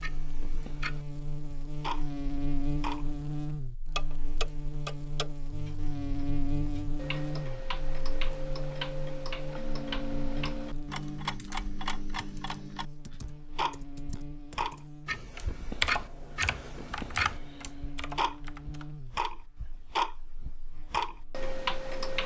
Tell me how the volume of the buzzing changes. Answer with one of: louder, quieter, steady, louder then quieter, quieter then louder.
quieter.